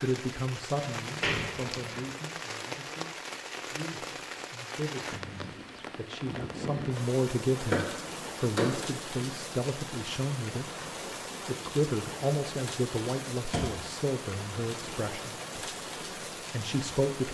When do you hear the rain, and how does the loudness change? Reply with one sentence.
You can hear the rain from 0.0 to 17.2 s, at a steady volume.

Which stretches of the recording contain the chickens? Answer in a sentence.
You can't hear the chickens here.